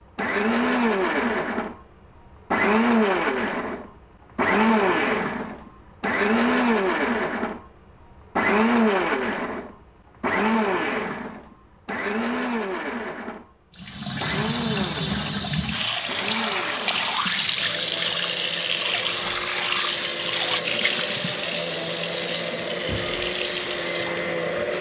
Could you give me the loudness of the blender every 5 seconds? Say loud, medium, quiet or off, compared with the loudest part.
loud, loud, medium, quiet, medium.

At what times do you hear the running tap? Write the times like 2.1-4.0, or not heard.
13.8-24.7.